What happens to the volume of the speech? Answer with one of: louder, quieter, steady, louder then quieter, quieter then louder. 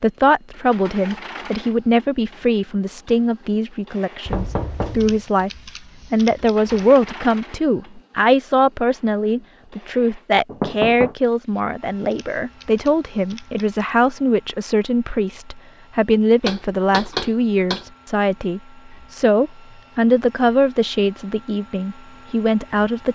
steady.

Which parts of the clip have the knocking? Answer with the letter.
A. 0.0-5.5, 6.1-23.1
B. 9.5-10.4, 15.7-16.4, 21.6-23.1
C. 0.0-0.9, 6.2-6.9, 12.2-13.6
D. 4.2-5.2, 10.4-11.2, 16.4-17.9
D.